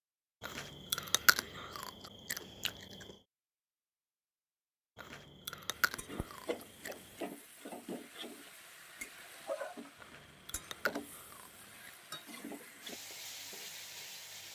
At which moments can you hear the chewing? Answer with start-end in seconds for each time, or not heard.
0.4-3.1, 5.0-7.2, 9.9-11.9.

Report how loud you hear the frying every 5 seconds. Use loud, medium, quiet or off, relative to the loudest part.
off, loud, loud.